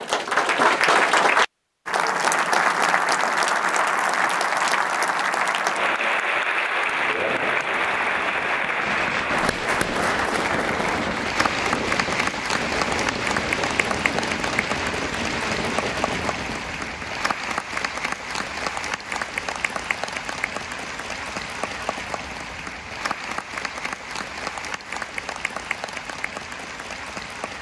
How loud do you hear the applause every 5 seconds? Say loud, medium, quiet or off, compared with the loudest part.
loud, loud, medium, medium, medium, quiet.